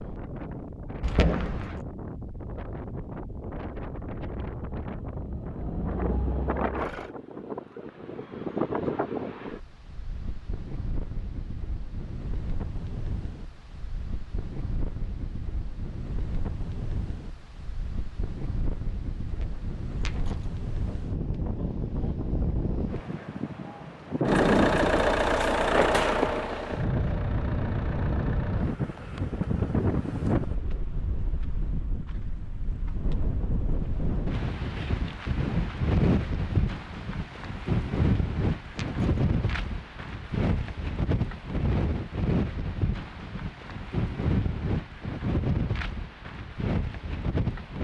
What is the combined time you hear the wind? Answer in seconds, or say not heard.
48 s.